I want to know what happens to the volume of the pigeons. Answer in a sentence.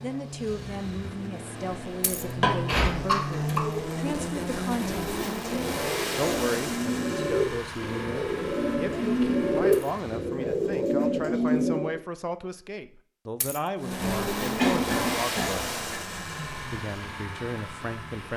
The loudness of the pigeons goes up.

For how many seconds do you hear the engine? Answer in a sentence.
You can hear the engine for 15 seconds altogether.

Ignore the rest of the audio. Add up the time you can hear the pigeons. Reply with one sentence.
The pigeons can be heard for 9 seconds in total.